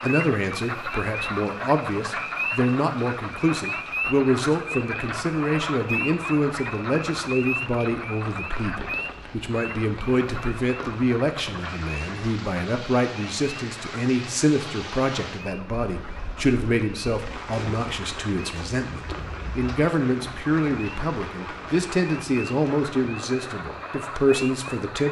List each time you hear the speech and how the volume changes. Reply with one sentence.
The speech can be heard from 0.0 to 25.0 s, at a steady volume.